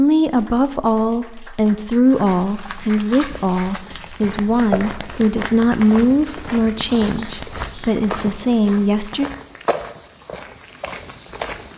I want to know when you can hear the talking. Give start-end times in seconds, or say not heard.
0.0-9.3.